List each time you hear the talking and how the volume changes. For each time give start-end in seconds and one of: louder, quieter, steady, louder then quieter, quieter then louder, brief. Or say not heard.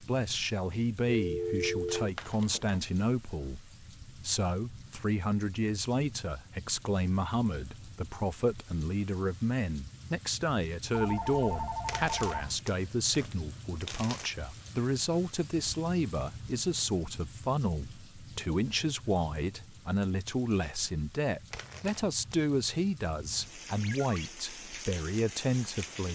0.0-26.1 steady.